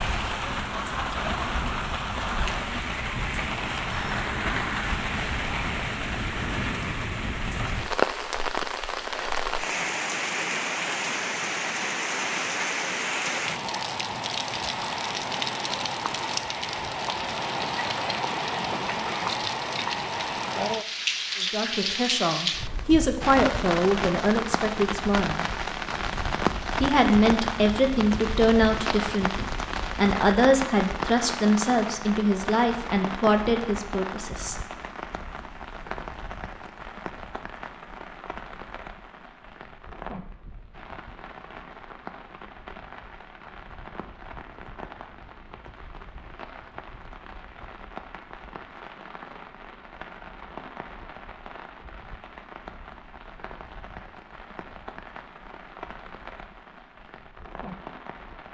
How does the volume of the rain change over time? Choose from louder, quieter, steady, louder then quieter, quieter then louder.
quieter.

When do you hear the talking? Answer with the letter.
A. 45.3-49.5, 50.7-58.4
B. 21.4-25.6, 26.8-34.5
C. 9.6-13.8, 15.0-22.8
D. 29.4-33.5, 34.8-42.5
B.